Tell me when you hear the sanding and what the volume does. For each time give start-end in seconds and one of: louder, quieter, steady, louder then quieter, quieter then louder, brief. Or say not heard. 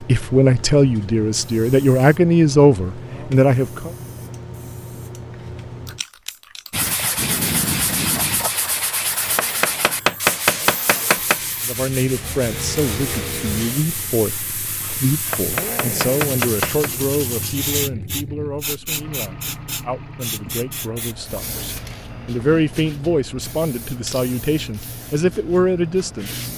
6.7-17.9 quieter.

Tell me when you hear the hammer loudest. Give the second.
10 s.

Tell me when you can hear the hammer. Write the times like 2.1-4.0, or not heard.
9.3-11.4, 15.3-16.9.